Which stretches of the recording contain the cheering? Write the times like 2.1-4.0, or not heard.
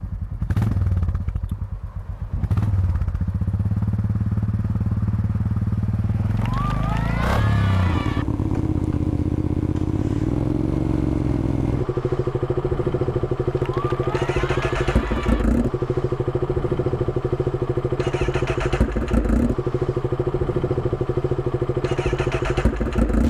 6.3-8.2, 13.5-15.4.